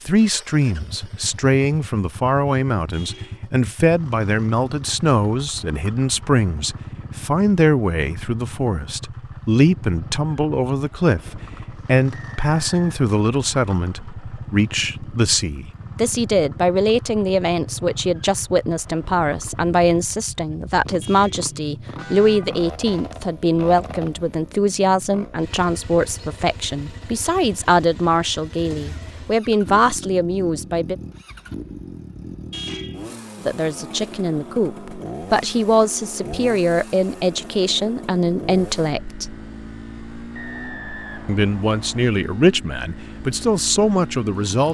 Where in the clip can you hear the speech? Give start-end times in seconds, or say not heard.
0.0-30.9, 33.4-39.3, 41.2-44.6.